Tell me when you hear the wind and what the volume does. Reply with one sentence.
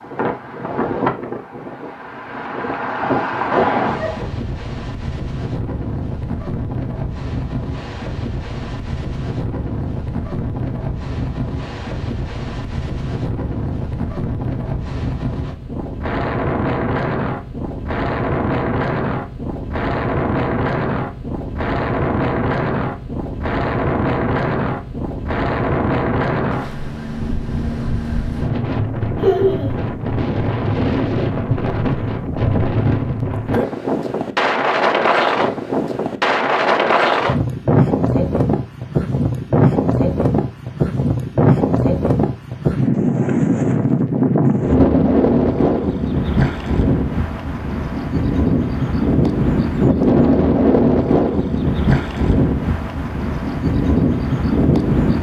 The wind can be heard from 0.0 to 55.1 s, getting louder.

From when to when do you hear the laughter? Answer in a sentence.
The laughter can be heard from 3.5 to 4.3 s and from 29.1 to 29.8 s.